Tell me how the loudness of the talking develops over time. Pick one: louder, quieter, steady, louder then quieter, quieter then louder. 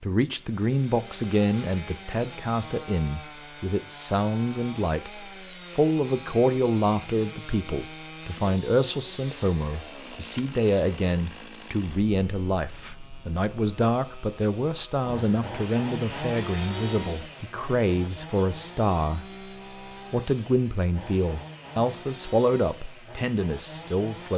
steady.